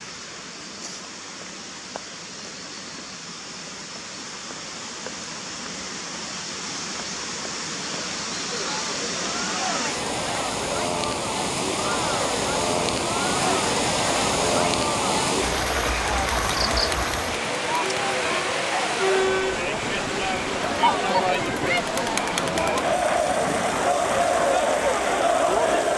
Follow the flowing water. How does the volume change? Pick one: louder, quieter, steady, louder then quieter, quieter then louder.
louder then quieter.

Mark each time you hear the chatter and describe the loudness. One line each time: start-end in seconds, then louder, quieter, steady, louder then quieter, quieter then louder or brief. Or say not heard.
8.4-25.9 louder.